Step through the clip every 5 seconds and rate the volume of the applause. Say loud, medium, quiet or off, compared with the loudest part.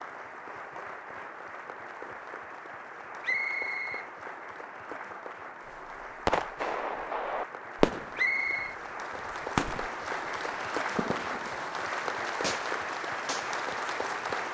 medium, medium, loud.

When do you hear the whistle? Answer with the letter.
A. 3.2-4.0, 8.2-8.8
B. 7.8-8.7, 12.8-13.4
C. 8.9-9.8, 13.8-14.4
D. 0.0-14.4
A.